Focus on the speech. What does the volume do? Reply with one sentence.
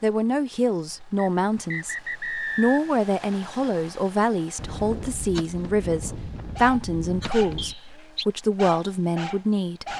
The loudness of the speech stays about the same.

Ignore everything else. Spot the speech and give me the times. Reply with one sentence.
The speech can be heard from 0.0 to 9.9 s.